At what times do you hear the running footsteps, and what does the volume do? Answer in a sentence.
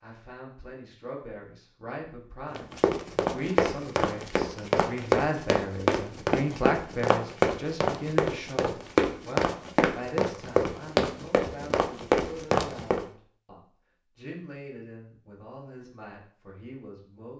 The running footsteps can be heard from 2.5 to 13.1 s, at a steady volume.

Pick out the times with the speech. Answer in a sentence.
You can hear the speech from 0.0 to 17.3 s.